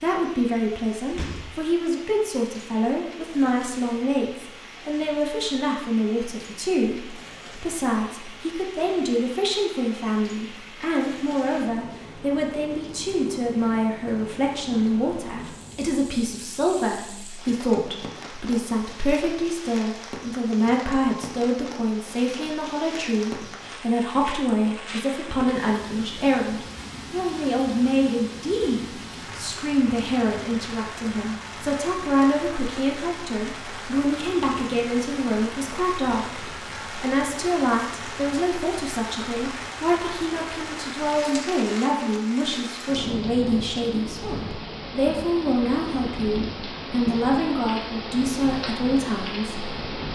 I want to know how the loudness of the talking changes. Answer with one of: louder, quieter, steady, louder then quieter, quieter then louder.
steady.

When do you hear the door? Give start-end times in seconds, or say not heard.
1.1-1.6.